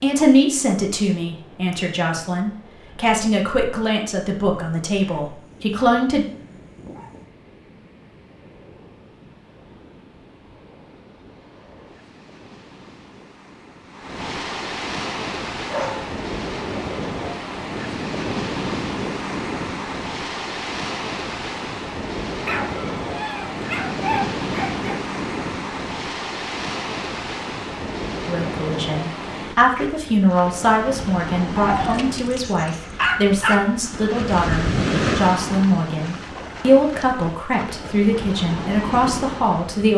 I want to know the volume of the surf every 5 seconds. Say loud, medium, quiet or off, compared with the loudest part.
quiet, quiet, medium, loud, loud, loud, loud, loud.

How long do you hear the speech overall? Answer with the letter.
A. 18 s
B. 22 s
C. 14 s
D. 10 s
A.